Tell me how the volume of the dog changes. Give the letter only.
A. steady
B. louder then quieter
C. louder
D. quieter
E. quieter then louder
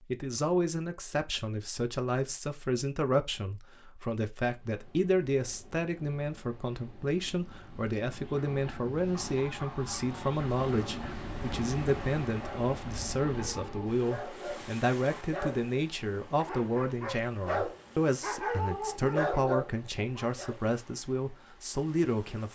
C.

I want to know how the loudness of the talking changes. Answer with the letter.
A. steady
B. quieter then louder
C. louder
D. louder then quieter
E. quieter
A.